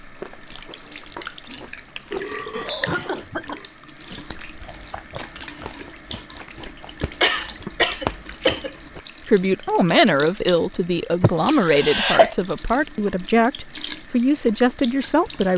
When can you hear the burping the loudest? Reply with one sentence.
The volume of the burping peaks at 2 seconds.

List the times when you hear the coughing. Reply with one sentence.
The coughing can be heard from 2.6 to 3.6 s, from 7.2 to 8.7 s and from 11.2 to 12.3 s.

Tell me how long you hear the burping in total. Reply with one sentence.
You can hear the burping for 2 seconds altogether.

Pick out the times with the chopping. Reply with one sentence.
You can't hear the chopping here.